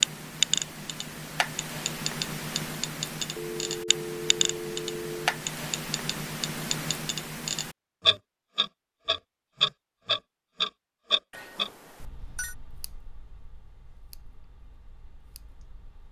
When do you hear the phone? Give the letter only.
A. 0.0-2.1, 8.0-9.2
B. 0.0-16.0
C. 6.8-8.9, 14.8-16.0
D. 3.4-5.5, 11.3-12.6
D.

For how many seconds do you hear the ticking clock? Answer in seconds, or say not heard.
16 s.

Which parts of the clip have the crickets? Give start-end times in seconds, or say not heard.
not heard.